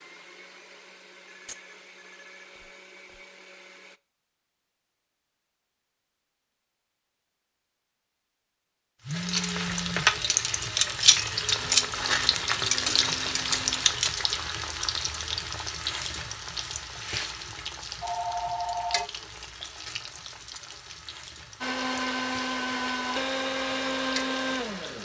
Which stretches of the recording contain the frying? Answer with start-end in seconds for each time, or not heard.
9.1-25.0.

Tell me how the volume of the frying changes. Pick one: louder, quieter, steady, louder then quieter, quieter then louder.
quieter.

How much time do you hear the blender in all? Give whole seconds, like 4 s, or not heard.
10 s.